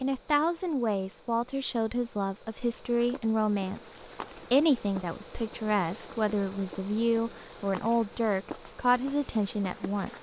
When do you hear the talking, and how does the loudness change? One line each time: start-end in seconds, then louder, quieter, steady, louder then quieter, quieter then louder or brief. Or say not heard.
0.0-10.1 steady.